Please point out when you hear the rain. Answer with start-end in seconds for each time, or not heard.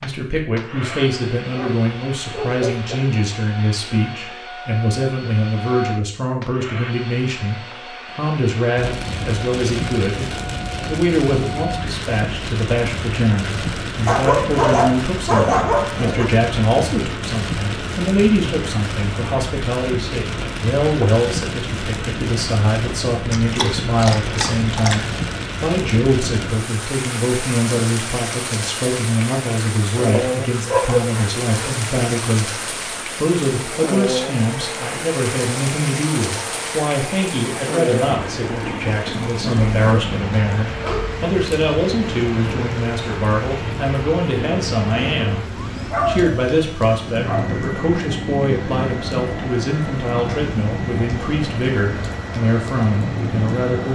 8.8-53.9.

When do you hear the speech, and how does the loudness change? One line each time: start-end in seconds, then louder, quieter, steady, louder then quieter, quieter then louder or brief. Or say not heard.
0.0-45.5 steady
46.0-53.9 steady.